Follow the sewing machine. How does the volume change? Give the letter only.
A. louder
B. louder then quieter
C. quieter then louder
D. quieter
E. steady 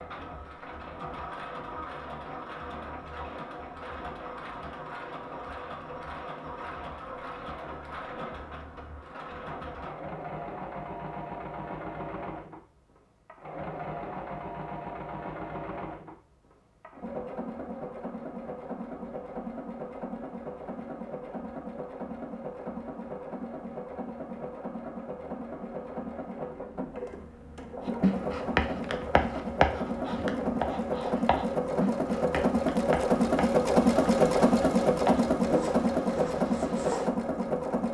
A.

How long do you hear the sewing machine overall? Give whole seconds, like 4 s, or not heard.
38 s.